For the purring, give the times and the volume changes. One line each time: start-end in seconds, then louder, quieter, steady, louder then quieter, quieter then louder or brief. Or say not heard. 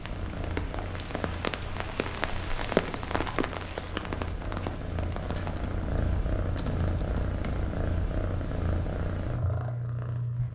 0.0-10.5 louder.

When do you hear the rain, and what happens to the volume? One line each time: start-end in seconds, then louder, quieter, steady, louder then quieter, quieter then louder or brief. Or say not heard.
0.0-5.7 louder then quieter.